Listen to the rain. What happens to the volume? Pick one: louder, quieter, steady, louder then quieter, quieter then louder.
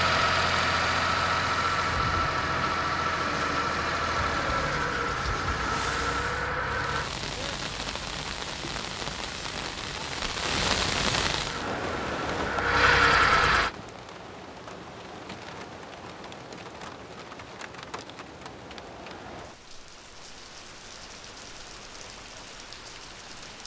louder then quieter.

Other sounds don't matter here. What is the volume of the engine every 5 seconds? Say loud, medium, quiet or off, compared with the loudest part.
loud, medium, loud, off, off.